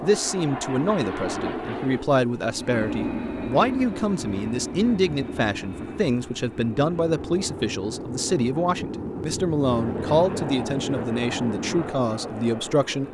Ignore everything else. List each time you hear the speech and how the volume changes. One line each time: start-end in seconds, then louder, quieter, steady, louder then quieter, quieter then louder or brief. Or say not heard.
0.0-13.0 steady.